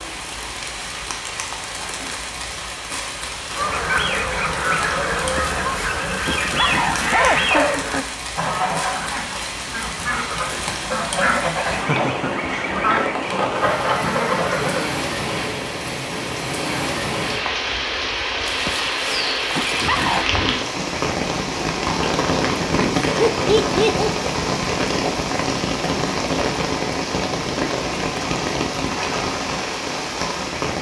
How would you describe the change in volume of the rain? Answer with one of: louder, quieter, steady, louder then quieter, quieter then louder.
louder.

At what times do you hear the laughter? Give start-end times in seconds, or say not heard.
7.5-8.1, 11.8-12.5, 23.0-24.3.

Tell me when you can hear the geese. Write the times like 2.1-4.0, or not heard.
3.5-14.9.